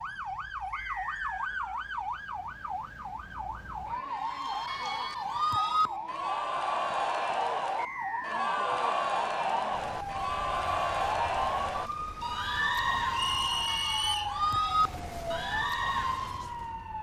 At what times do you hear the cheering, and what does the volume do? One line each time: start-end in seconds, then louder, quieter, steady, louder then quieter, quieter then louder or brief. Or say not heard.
4.0-16.4 steady.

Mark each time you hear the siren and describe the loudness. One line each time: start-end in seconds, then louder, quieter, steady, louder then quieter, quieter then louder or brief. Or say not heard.
0.0-16.9 steady.